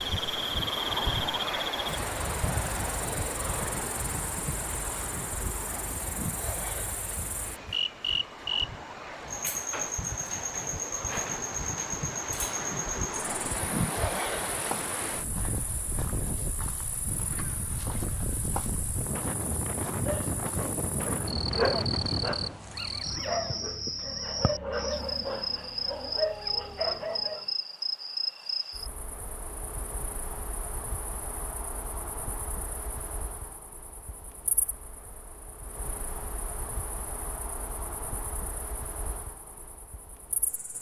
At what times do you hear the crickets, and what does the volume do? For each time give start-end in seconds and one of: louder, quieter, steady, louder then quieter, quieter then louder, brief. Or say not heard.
0.0-40.7 quieter.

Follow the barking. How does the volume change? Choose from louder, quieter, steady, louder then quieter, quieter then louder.
quieter then louder.